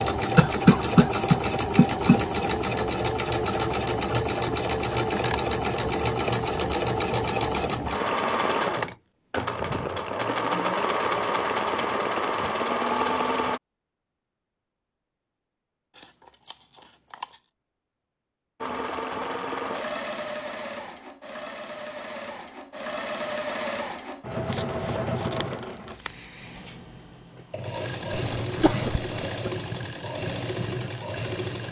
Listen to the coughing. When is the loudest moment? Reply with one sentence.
The loudest moment of the coughing is at 1 second.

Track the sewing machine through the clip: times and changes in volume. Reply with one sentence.
You can hear the sewing machine from 0.0 to 13.6 s, at a steady volume; and from 18.6 to 31.6 s, at a steady volume.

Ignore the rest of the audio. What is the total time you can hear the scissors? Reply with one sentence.
The scissors can be heard for 4 seconds in total.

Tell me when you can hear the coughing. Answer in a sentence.
The coughing can be heard from 0.3 to 2.2 s and from 28.1 to 29.1 s.